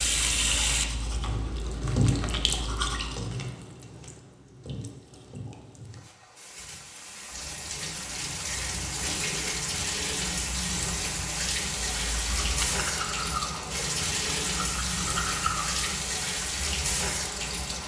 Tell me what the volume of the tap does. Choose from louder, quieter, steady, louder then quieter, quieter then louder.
quieter then louder.